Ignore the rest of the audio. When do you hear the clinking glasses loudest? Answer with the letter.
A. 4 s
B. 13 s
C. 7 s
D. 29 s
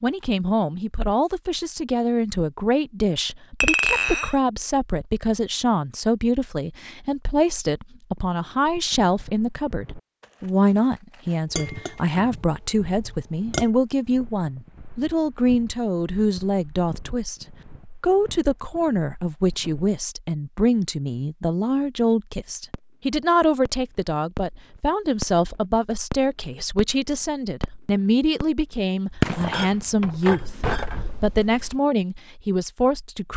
A.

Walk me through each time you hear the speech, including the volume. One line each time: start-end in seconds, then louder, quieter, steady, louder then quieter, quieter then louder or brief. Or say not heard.
0.0-33.3 steady.